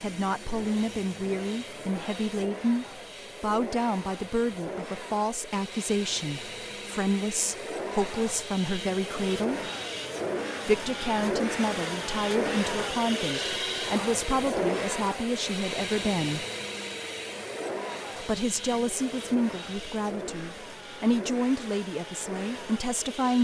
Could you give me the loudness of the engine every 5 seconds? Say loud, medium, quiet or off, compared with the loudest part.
medium, medium, loud, medium, medium.